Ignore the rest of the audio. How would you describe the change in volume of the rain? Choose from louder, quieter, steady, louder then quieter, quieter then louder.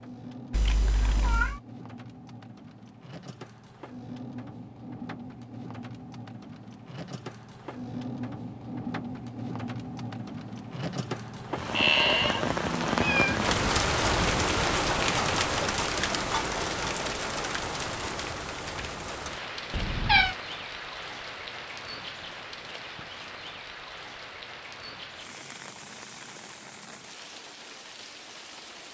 louder then quieter.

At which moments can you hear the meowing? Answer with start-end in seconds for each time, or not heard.
0.5-1.6, 11.5-13.4, 19.7-20.4.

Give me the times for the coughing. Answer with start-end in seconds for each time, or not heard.
not heard.